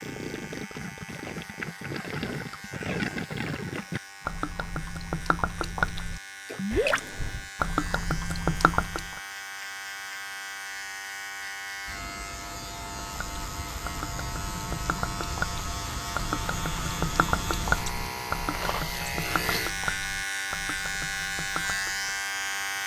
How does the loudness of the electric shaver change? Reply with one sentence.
The loudness of the electric shaver goes up.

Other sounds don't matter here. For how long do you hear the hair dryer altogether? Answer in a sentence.
You can't hear the hair dryer here.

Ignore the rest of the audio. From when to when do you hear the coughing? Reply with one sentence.
The coughing can be heard from 6.7 to 7.5 s.